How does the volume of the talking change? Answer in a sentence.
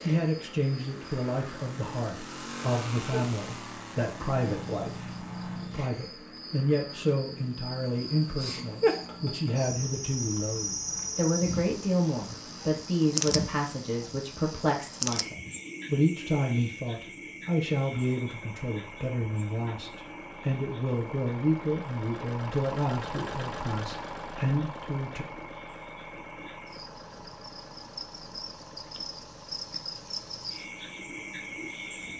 The volume of the talking stays about the same.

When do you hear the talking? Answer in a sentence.
The talking can be heard from 0.0 to 25.2 s.